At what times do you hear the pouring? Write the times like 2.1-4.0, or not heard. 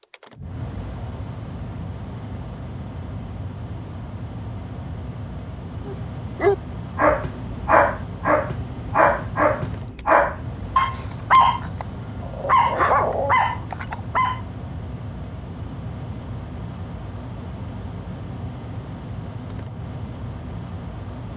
not heard.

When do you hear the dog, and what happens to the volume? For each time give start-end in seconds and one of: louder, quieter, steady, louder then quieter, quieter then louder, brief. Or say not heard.
5.8-14.4 steady.